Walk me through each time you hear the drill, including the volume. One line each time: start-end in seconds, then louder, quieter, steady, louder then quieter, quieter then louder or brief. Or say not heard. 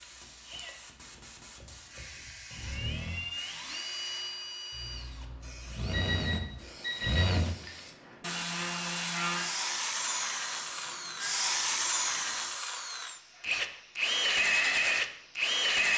0.0-15.9 louder.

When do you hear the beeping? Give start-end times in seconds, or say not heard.
5.9-7.3.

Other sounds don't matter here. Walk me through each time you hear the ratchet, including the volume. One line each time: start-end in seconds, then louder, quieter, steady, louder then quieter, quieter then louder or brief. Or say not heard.
not heard.